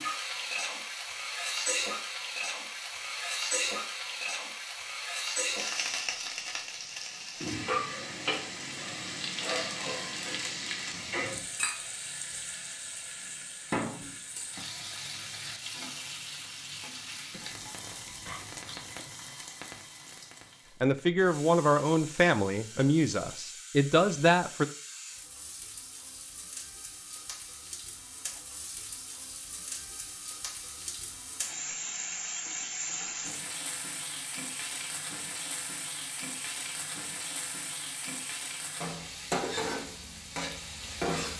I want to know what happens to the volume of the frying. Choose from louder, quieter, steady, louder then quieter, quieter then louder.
quieter then louder.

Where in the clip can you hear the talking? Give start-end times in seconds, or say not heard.
20.8-24.6.